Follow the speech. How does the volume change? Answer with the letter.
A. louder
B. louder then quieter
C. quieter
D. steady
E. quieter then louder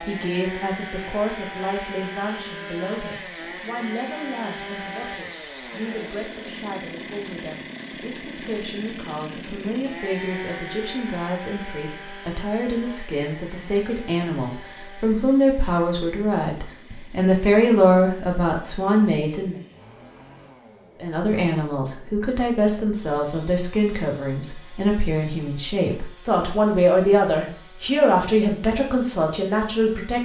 A.